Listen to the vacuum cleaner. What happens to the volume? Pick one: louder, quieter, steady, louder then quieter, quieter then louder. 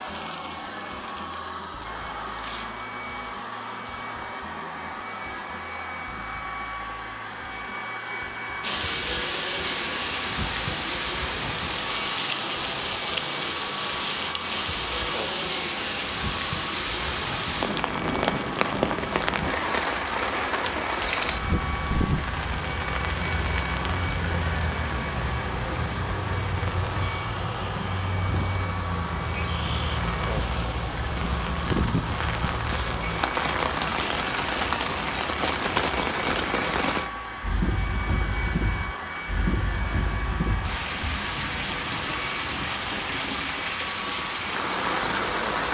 steady.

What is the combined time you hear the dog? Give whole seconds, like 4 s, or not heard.
not heard.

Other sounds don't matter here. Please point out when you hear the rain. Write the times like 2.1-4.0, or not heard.
8.6-45.6.